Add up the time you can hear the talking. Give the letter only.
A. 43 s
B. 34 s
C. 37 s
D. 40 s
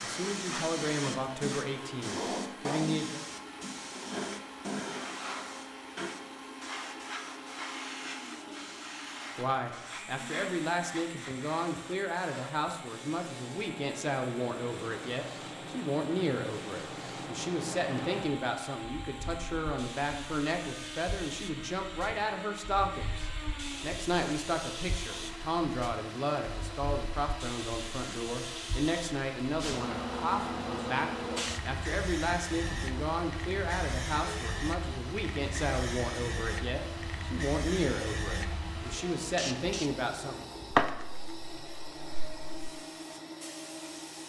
B.